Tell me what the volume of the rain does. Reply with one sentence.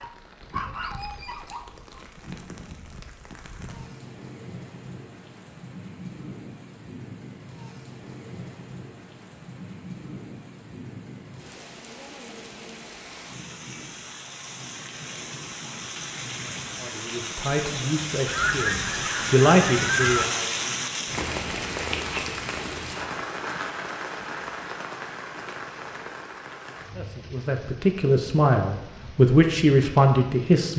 The volume of the rain goes up, then down.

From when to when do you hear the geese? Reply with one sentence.
You can hear the geese from 18.2 to 20.2 s.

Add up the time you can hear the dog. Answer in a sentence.
You can hear the dog for 2 seconds altogether.